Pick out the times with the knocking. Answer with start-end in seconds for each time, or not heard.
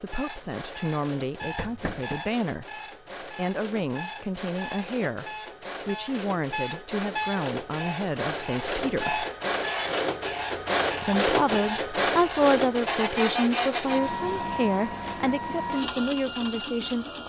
1.4-2.2.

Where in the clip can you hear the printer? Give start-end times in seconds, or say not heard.
0.0-17.2.